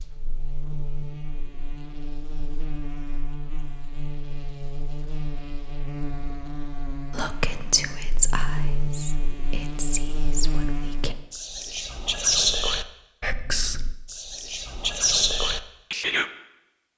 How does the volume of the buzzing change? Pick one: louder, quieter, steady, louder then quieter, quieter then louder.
louder.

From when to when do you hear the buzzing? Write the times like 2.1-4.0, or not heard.
0.0-11.2.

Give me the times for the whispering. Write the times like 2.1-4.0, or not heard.
7.1-16.2.